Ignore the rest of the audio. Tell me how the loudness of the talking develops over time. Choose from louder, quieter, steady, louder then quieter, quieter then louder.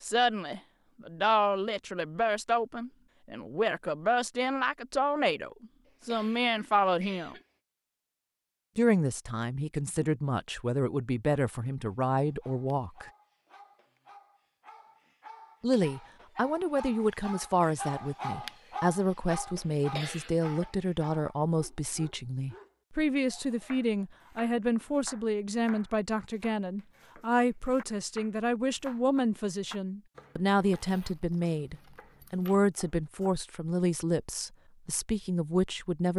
steady.